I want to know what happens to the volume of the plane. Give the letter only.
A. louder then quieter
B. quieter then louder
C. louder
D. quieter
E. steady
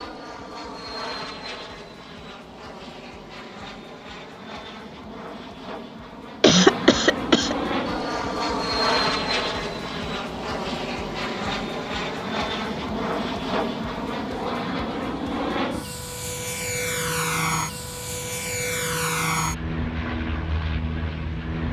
C.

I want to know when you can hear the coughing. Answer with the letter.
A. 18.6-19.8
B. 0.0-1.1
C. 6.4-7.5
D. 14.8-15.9
C.